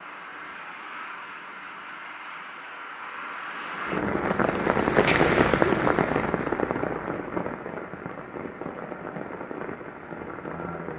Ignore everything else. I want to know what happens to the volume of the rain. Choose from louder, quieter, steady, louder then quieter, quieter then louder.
louder then quieter.